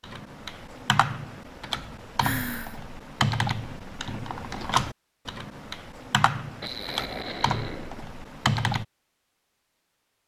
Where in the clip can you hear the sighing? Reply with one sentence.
The sighing can be heard from 2.1 to 2.8 s and from 6.6 to 8.1 s.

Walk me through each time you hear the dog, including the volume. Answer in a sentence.
The dog can't be heard in this clip.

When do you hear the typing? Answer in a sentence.
You can hear the typing from 0.0 to 8.8 s.